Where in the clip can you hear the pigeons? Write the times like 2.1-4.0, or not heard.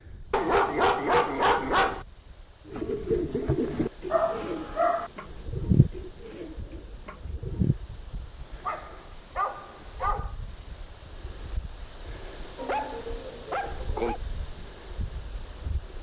2.6-7.8.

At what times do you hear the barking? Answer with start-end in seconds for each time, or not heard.
0.3-2.0, 4.1-5.1, 8.6-10.3, 12.6-14.2.